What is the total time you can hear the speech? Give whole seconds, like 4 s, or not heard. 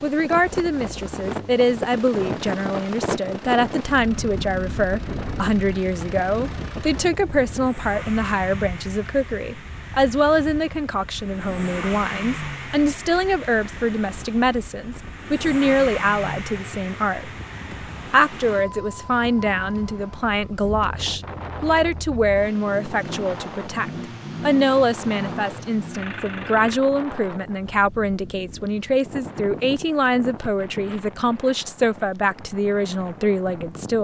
34 s.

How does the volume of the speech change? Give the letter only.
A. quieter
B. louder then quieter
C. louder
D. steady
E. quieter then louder
D.